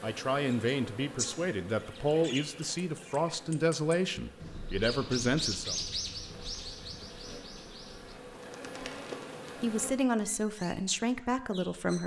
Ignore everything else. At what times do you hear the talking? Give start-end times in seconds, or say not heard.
0.0-5.8, 9.6-12.0.